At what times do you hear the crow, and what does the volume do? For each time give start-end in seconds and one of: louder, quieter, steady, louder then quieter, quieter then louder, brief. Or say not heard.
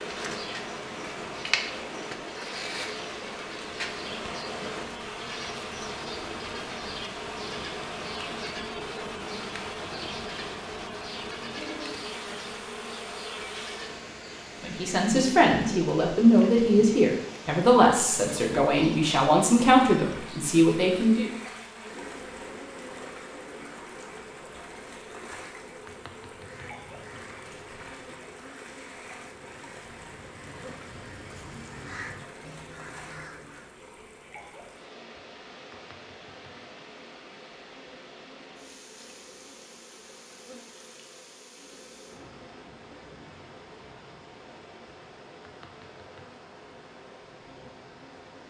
26.3-33.7 quieter then louder.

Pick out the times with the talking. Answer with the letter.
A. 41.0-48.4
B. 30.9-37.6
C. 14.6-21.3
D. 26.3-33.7
C.